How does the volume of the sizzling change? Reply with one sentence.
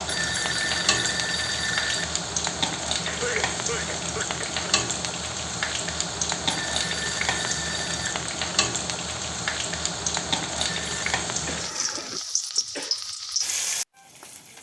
The loudness of the sizzling stays about the same.